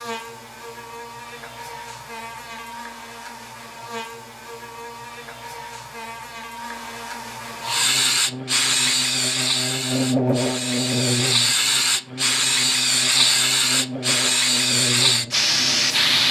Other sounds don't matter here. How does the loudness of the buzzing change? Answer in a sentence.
The loudness of the buzzing goes up, then down.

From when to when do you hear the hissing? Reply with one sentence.
You can hear the hissing from 7.6 to 16.2 s.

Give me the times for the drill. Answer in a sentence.
You can't hear the drill here.